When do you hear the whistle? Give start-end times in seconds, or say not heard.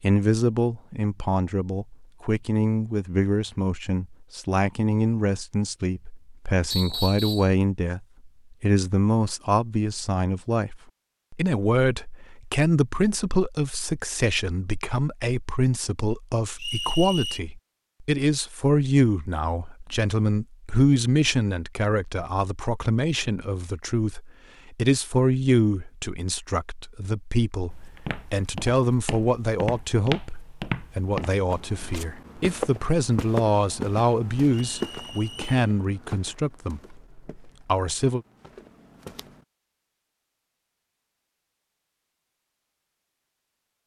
6.7-7.5, 16.6-17.4, 34.5-35.5.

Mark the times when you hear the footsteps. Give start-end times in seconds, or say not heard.
27.7-39.5.